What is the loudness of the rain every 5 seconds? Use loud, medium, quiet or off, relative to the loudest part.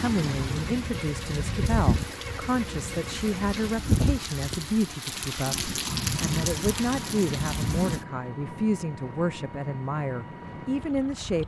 loud, loud, off.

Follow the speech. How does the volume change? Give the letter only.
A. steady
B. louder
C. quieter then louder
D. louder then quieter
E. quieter
A.